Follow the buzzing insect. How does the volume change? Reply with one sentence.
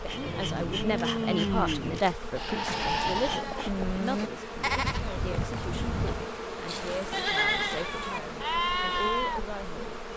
The volume of the buzzing insect stays about the same.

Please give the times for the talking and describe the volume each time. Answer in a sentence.
You can hear the talking from 0.0 to 10.1 s, getting quieter.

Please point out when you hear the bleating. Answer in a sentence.
The bleating can be heard from 0.1 to 9.6 s.